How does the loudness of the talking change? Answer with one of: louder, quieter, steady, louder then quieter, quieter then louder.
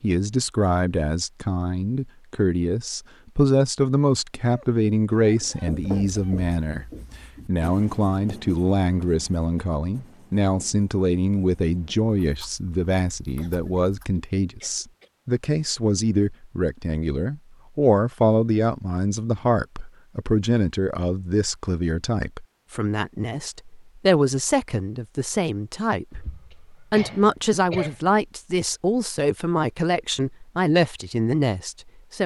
steady.